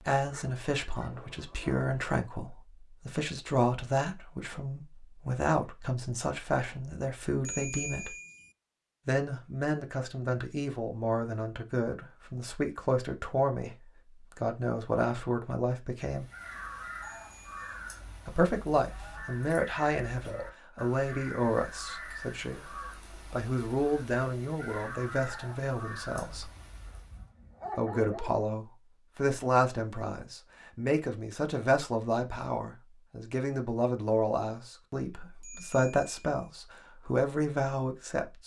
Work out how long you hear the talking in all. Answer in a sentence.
You can hear the talking for 34 seconds altogether.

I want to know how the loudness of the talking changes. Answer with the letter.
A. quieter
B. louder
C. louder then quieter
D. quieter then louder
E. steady
E.